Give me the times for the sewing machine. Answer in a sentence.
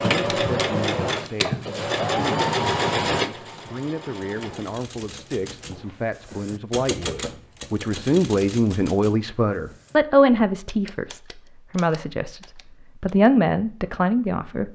You can hear the sewing machine from 0.0 to 4.8 s.